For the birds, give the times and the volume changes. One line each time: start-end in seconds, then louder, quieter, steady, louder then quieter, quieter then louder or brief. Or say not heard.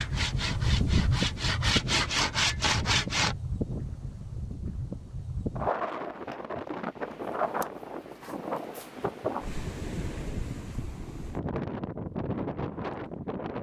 not heard.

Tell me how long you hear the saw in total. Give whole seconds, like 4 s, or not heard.
3 s.